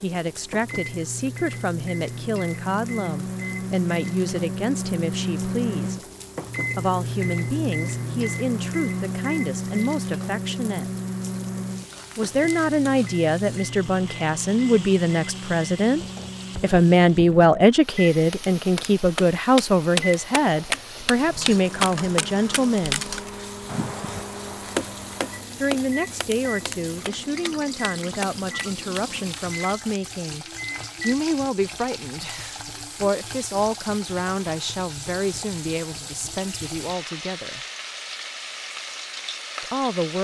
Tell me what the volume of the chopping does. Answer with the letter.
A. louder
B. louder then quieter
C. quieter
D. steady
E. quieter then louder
C.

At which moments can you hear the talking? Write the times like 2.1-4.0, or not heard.
0.0-6.0, 6.8-10.9, 12.2-16.0, 16.6-23.1, 25.6-37.6, 39.6-40.1.